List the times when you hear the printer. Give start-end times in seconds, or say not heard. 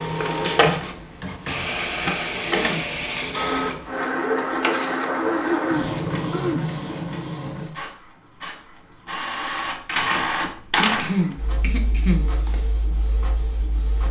0.0-14.0.